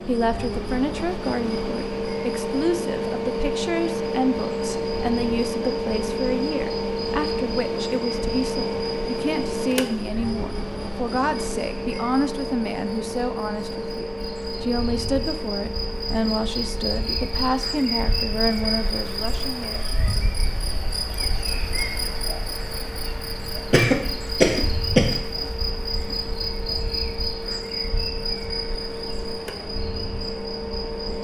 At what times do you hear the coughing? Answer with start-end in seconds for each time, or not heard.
23.7-25.5.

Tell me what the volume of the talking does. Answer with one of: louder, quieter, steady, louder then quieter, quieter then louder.
steady.